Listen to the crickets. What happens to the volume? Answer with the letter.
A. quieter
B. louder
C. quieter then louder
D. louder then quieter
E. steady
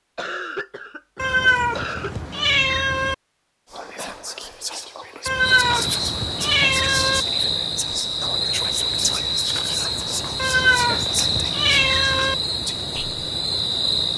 E.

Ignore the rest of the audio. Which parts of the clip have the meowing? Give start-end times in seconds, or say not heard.
1.1-3.1, 5.2-7.2, 10.3-12.3.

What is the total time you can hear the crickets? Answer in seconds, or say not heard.
9 s.